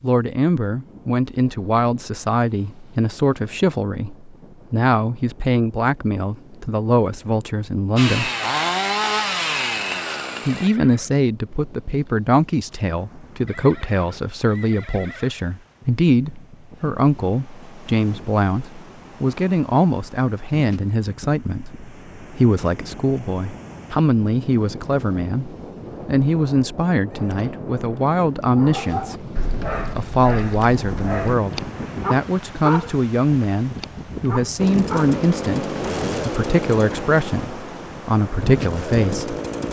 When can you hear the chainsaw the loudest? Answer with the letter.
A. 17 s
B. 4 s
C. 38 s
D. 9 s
D.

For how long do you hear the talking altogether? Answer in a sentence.
You can hear the talking for 37 seconds altogether.